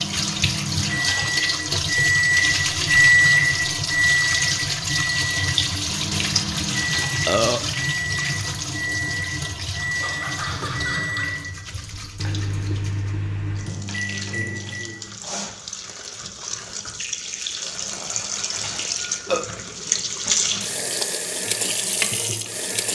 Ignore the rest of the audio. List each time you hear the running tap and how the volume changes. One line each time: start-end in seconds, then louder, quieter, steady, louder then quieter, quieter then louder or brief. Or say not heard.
0.0-22.9 quieter then louder.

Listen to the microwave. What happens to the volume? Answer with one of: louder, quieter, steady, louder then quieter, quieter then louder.
quieter.